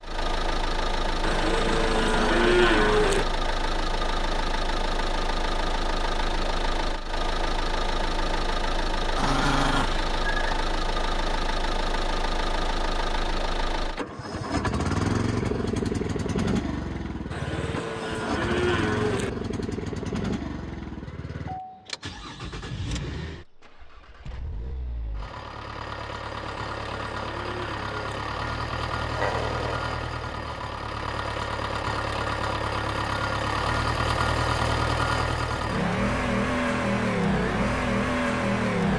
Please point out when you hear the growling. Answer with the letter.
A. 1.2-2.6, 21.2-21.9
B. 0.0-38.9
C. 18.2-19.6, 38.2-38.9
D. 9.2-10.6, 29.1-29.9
D.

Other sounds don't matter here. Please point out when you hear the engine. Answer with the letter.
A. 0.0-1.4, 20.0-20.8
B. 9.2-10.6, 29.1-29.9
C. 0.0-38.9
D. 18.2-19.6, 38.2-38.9
C.